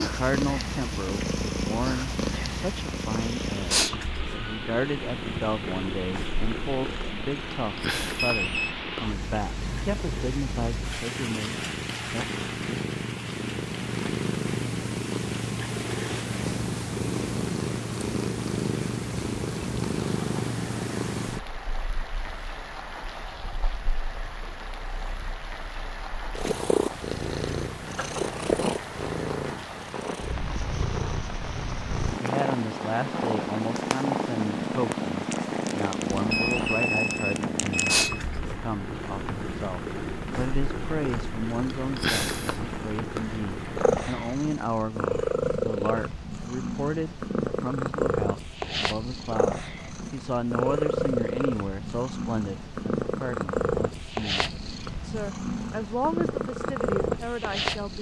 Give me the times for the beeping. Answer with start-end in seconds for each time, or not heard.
8.2-8.8, 36.1-38.2.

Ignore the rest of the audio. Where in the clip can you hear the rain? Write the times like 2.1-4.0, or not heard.
0.0-44.5.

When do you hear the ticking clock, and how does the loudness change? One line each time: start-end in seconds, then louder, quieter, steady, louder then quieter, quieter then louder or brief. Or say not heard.
not heard.